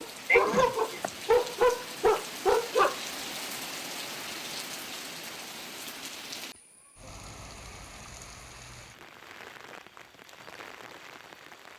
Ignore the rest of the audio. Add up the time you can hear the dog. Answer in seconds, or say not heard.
3 s.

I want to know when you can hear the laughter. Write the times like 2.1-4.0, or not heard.
0.2-1.1.